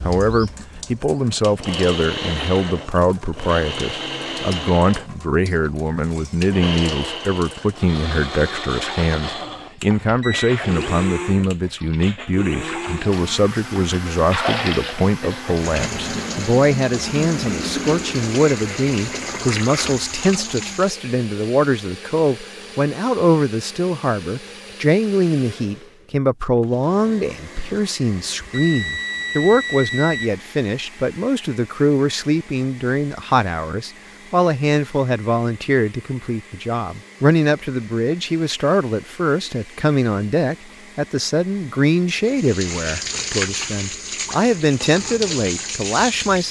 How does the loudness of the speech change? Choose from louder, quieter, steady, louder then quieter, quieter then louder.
steady.